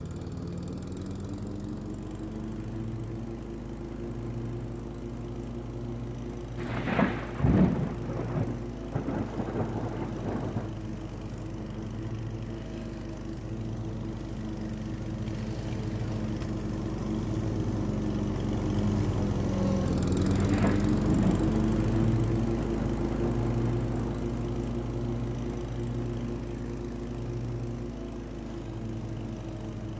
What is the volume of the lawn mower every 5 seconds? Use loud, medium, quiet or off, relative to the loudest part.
medium, medium, medium, loud, loud, medium.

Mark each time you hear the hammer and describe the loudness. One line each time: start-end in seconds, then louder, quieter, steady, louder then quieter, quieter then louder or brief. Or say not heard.
not heard.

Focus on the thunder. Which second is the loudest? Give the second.
8 s.